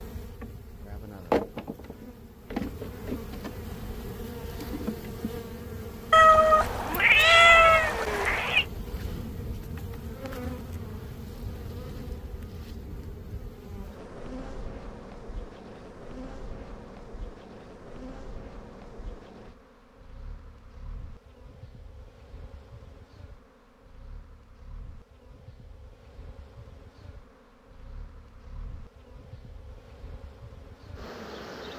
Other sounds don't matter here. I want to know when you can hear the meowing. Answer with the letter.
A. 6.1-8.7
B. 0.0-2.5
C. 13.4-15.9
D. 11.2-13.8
A.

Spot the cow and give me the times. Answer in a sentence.
You can't hear the cow here.